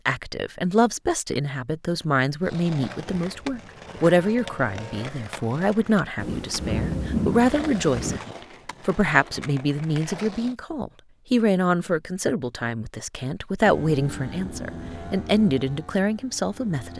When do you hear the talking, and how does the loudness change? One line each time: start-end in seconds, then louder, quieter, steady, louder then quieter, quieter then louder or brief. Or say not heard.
0.1-16.9 steady.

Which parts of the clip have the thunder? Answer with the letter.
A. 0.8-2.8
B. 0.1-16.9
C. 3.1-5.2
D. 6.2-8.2
D.